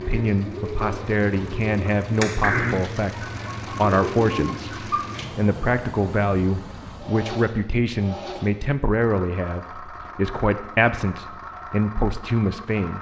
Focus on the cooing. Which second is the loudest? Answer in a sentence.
The loudest moment of the cooing is at 3 seconds.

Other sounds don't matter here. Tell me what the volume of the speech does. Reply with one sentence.
The volume of the speech stays about the same.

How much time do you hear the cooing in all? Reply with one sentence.
You can hear the cooing for 5 seconds altogether.